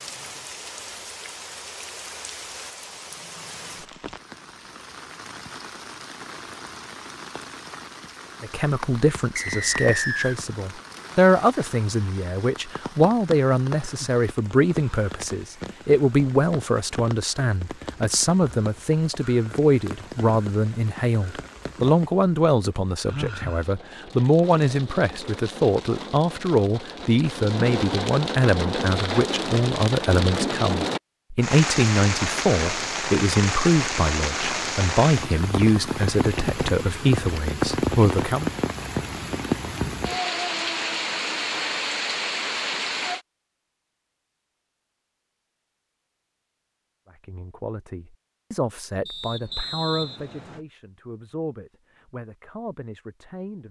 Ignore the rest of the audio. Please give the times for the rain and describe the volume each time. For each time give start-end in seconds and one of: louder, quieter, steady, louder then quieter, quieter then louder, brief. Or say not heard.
0.0-43.2 louder.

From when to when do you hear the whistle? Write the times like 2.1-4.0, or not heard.
9.3-10.3, 49.0-50.6.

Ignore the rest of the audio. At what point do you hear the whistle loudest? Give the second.
10 s.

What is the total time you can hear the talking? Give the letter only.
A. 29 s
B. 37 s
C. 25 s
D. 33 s
B.